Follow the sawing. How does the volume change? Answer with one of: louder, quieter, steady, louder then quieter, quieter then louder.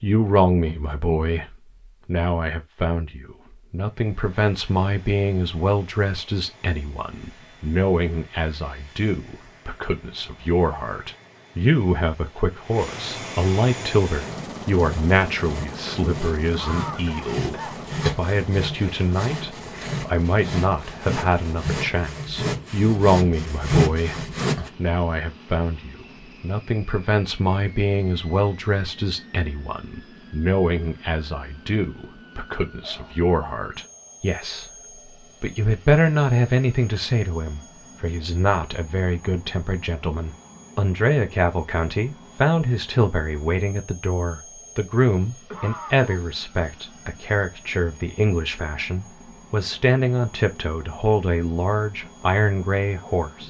louder.